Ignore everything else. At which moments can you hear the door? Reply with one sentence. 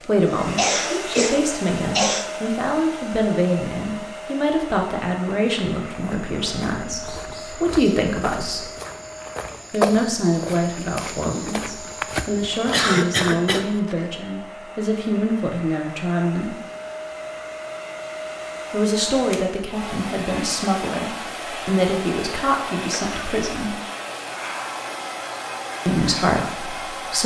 The door can't be heard in this clip.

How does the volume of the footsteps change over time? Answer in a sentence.
The volume of the footsteps goes up, then down.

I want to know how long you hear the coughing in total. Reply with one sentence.
The coughing can be heard for 3 seconds in total.